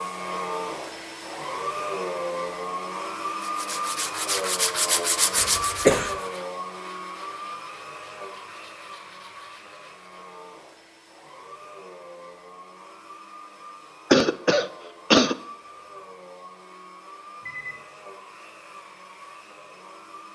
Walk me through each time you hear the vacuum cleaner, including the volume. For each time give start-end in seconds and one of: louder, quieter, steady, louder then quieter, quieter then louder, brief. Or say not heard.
0.0-20.2 quieter.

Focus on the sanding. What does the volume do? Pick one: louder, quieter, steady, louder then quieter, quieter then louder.
quieter.